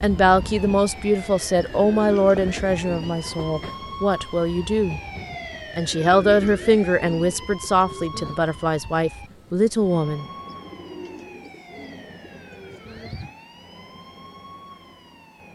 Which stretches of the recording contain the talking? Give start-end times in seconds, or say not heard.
0.0-5.0, 5.8-10.2.